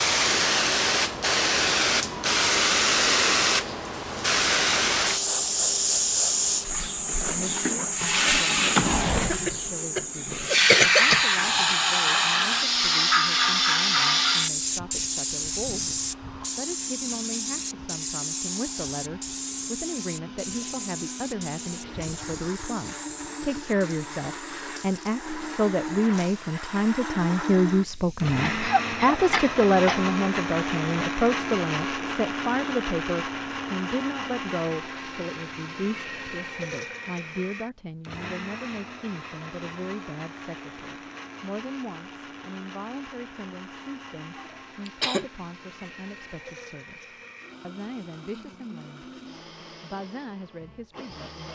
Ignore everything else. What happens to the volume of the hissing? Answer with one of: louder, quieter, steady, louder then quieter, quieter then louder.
quieter.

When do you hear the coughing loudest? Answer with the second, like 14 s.
11 s.